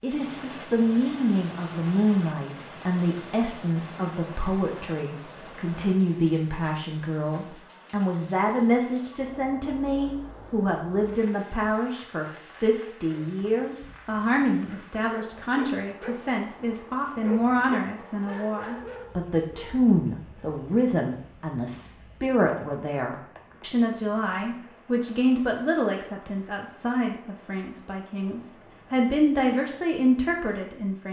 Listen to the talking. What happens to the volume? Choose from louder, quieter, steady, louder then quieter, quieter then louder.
steady.